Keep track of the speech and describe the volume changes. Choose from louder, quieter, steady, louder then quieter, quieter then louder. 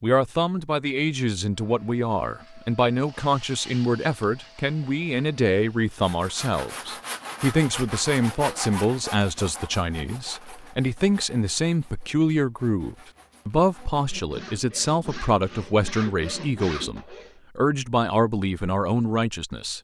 steady.